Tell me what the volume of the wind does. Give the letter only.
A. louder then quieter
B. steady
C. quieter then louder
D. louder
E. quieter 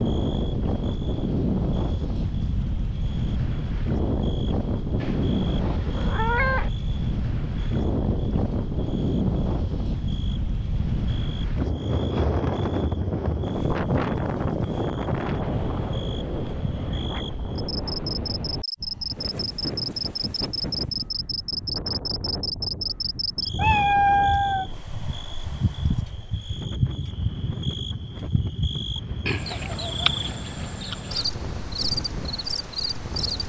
E.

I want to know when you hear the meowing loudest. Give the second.
24 s.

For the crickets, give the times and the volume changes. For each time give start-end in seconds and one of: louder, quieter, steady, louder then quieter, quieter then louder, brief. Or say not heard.
0.0-33.4 louder.